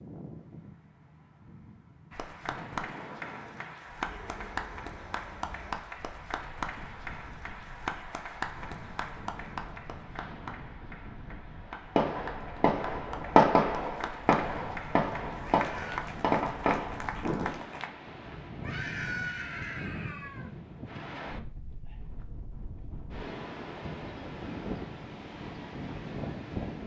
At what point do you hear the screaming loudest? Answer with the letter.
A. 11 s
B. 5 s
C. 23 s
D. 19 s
D.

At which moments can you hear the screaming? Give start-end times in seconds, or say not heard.
4.0-5.8, 15.5-16.1, 18.6-20.5.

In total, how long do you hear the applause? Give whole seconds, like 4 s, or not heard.
16 s.